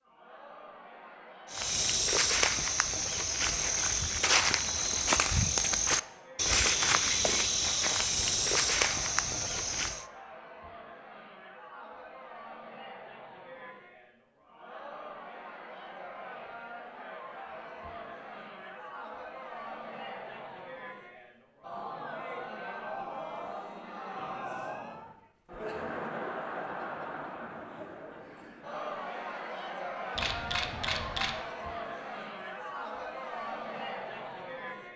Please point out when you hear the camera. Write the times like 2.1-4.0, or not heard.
8.2-9.9, 30.1-31.4.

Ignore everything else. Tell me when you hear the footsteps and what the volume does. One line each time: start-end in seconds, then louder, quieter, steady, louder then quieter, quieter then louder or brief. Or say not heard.
1.5-10.1 steady.